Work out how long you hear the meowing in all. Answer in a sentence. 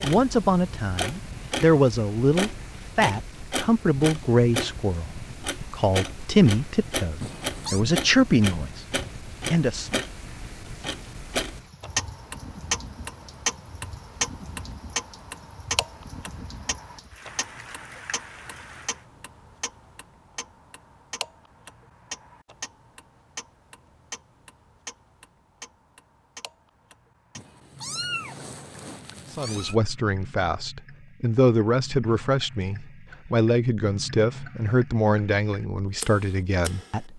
You can hear the meowing for 3 seconds altogether.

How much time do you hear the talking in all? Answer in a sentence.
You can hear the talking for 18 seconds altogether.